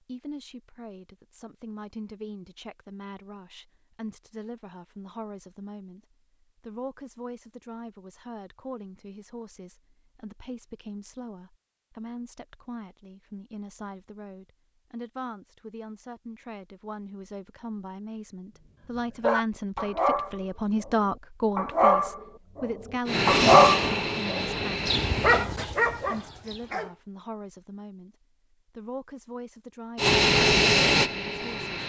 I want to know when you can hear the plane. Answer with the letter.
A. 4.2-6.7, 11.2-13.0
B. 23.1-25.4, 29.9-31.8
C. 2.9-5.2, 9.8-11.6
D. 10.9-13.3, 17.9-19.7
B.